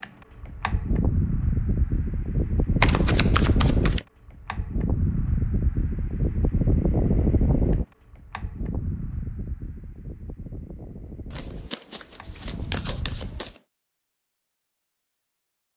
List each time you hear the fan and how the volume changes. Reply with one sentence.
The fan can be heard from 0.0 to 13.6 s, getting quieter.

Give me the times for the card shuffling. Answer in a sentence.
The card shuffling can be heard from 2.8 to 4.0 s and from 11.3 to 13.6 s.